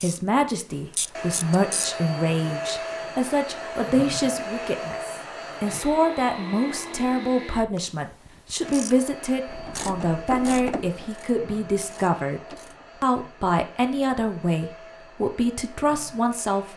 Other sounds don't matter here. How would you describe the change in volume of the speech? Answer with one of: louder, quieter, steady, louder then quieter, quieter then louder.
steady.